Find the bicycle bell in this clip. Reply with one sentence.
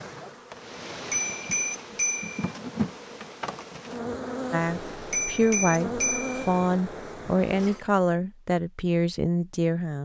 The bicycle bell can be heard from 1.1 to 2.5 s and from 5.1 to 6.5 s.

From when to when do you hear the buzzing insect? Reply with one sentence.
You can hear the buzzing insect from 0.0 to 7.8 s.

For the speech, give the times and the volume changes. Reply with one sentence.
You can hear the speech from 4.5 to 10.0 s, at a steady volume.